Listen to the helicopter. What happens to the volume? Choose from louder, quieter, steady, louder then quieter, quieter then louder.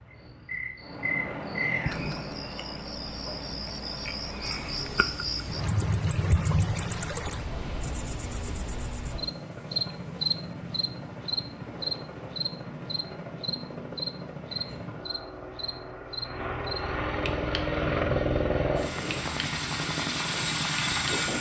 louder.